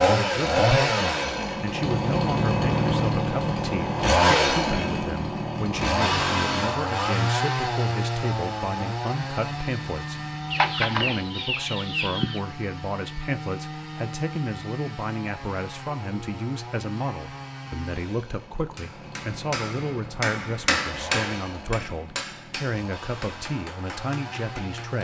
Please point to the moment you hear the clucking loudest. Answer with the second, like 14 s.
11 s.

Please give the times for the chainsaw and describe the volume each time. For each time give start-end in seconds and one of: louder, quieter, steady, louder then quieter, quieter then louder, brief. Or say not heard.
0.0-25.0 quieter.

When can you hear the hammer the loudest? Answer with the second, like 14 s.
21 s.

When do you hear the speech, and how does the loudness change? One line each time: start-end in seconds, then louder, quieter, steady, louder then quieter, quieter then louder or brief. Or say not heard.
0.1-25.0 steady.